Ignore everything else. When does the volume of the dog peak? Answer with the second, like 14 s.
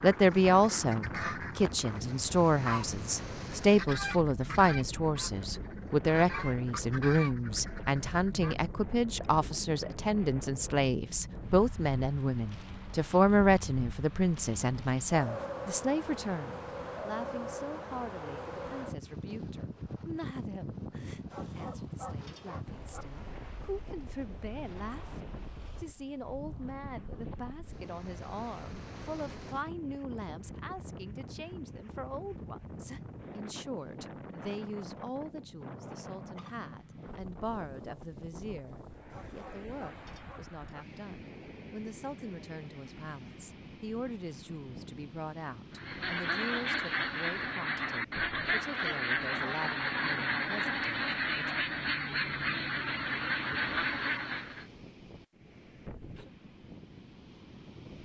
22 s.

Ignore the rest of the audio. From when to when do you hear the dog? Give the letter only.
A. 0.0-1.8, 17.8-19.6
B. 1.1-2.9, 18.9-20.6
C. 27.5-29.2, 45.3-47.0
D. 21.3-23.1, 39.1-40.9
D.